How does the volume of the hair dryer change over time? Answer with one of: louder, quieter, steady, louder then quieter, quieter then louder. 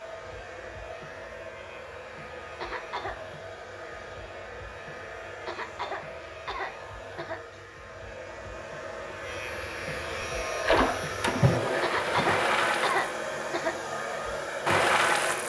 louder.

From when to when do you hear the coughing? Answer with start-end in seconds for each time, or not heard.
2.6-3.2, 5.5-7.4, 11.8-13.8.